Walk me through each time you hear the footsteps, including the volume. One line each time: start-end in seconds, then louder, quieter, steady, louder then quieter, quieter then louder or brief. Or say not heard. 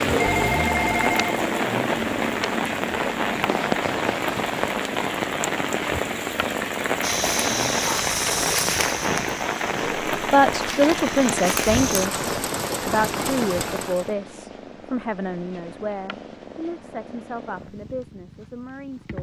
7.0-12.1 quieter then louder.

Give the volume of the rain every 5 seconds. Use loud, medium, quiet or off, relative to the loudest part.
loud, loud, loud, off.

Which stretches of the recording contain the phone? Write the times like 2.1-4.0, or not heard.
0.1-1.4.